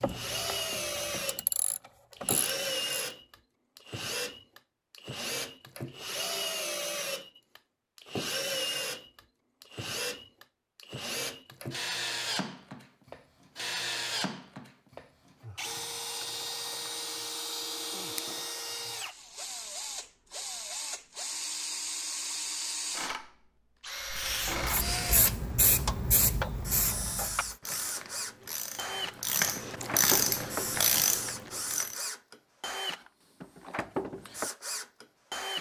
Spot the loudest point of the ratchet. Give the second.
30 s.